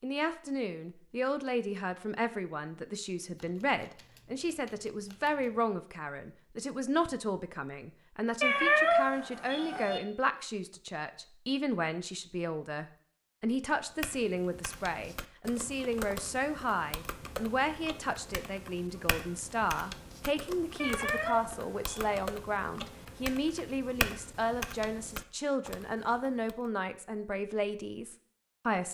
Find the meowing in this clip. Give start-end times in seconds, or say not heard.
8.4-10.0, 20.8-22.2.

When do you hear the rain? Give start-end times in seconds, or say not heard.
not heard.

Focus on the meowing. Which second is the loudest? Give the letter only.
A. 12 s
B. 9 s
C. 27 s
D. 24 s
B.